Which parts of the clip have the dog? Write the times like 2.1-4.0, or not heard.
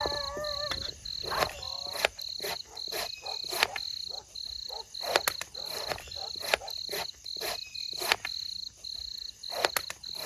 0.0-2.0, 2.6-6.8.